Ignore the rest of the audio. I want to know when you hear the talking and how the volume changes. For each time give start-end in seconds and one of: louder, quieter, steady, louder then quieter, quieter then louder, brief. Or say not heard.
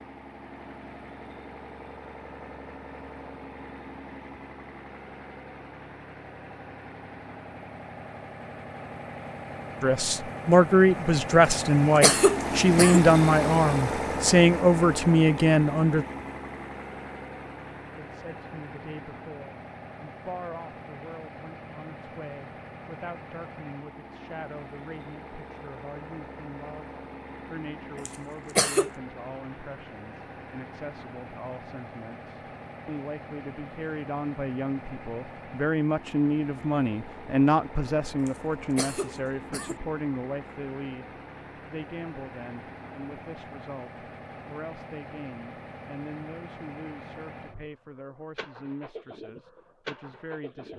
9.8-16.1 steady
17.9-50.7 louder then quieter.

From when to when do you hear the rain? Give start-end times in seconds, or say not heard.
not heard.